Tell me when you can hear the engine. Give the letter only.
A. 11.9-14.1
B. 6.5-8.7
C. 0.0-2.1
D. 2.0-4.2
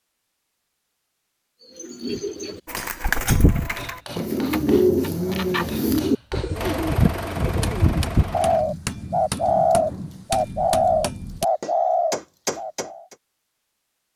B.